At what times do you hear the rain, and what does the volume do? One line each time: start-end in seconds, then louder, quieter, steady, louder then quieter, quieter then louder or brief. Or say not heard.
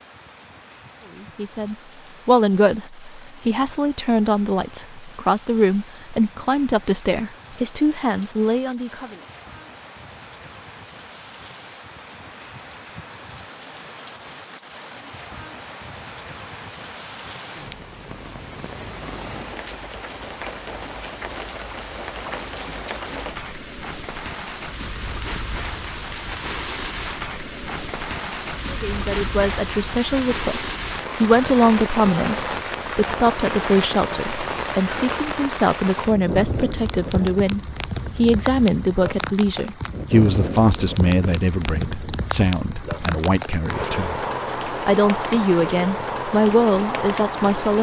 0.0-47.7 louder.